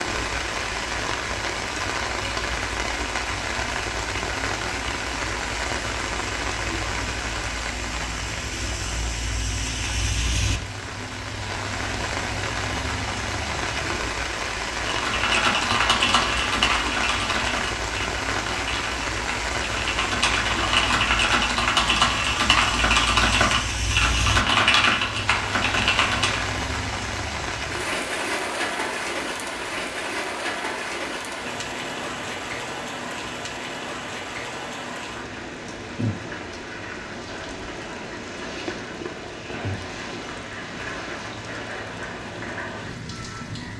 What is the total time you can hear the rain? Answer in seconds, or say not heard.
44 s.